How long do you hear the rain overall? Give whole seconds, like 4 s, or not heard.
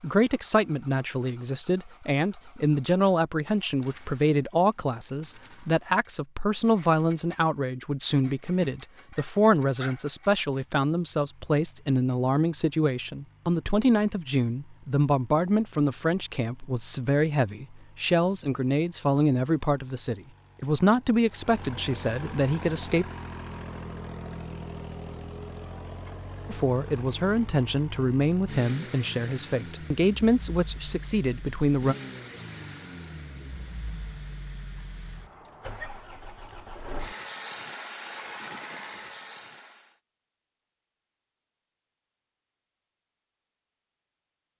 not heard.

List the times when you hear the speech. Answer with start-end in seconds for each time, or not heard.
0.0-23.1, 26.4-31.9.